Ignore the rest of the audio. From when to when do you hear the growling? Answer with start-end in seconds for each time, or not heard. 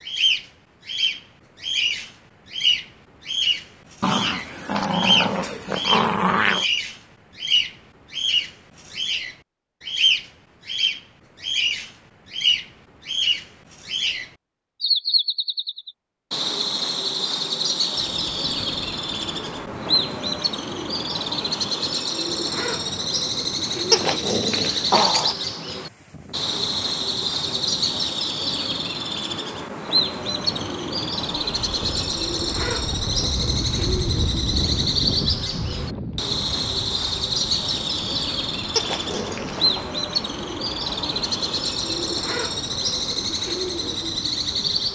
4.0-6.7, 23.9-25.4, 38.8-39.9.